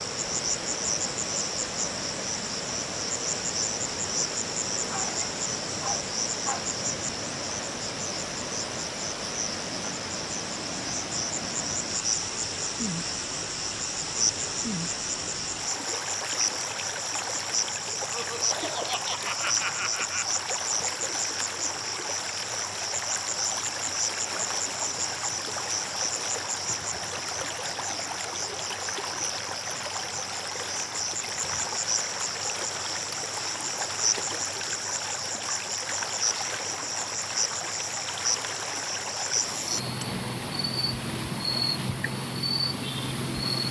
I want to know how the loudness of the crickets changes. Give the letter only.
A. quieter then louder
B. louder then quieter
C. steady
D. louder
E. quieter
C.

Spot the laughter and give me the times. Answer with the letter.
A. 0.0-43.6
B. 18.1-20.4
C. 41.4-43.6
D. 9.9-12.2
B.